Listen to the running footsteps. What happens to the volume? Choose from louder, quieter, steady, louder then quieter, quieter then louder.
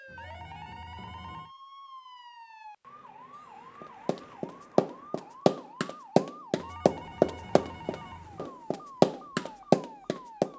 quieter then louder.